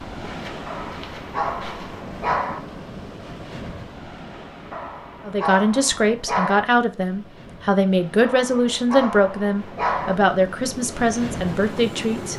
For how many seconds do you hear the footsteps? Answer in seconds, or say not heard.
2 s.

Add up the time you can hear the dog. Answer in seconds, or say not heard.
6 s.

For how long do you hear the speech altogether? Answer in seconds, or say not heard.
7 s.